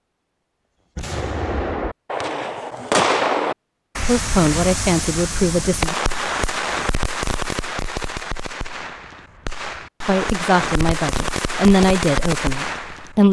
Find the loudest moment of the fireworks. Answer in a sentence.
The loudest moment of the fireworks is at 3 seconds.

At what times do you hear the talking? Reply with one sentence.
The talking can be heard from 4.0 to 6.0 s and from 10.1 to 13.2 s.